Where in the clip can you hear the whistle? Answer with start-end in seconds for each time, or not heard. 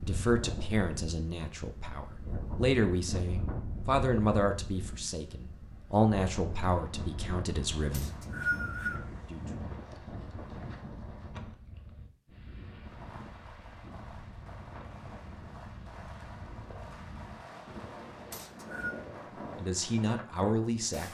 7.9-9.0, 18.3-18.9.